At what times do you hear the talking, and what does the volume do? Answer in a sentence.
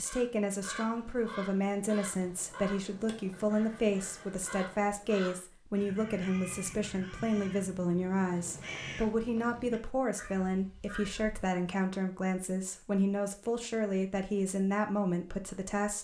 The talking can be heard from 0.0 to 16.0 s, at a steady volume.